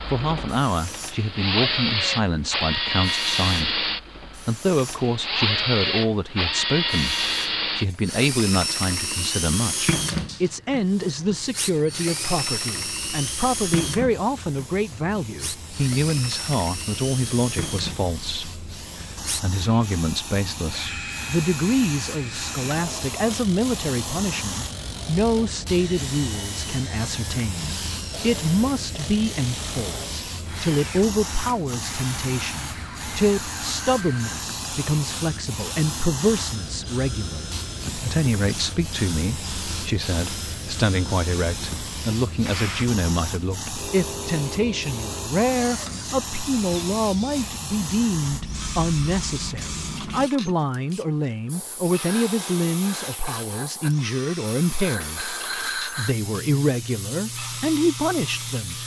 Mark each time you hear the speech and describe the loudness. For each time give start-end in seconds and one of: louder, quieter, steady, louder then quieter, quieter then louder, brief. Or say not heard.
0.0-58.8 steady.